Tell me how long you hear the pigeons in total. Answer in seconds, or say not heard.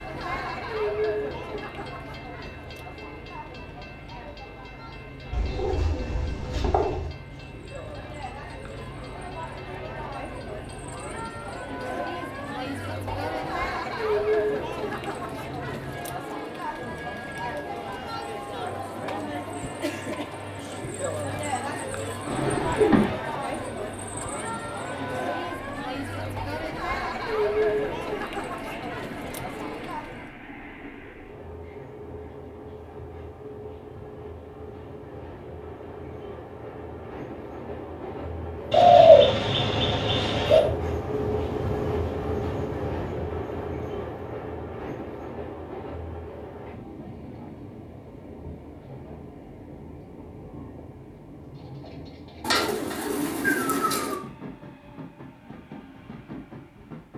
6 s.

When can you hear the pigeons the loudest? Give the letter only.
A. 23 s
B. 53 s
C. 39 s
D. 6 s
C.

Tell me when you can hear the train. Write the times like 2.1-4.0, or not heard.
0.0-57.1.